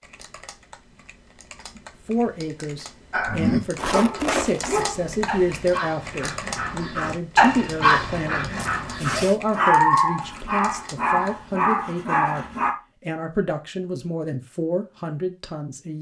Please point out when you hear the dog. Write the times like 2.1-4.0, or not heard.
3.1-12.8.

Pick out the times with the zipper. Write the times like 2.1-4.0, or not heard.
3.8-4.8, 8.8-9.4.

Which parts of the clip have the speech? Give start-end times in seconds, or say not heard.
2.0-15.9.